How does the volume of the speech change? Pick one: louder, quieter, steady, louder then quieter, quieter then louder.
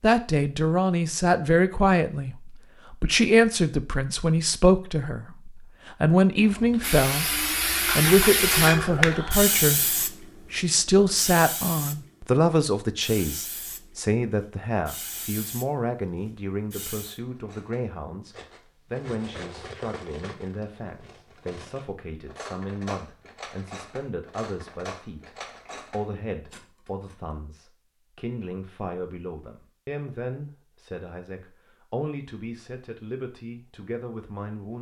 quieter.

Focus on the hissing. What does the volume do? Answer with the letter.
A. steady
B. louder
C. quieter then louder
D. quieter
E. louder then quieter
D.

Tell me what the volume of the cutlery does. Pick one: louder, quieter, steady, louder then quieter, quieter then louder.
steady.